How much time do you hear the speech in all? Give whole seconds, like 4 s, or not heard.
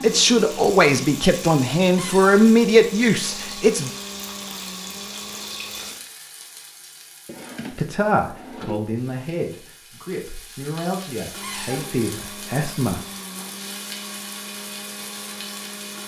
9 s.